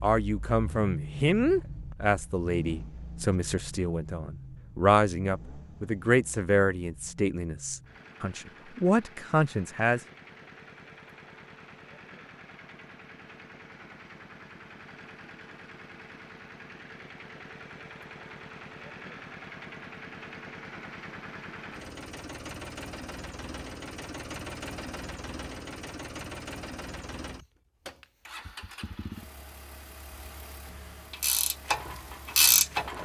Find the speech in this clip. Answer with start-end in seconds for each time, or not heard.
0.0-10.0.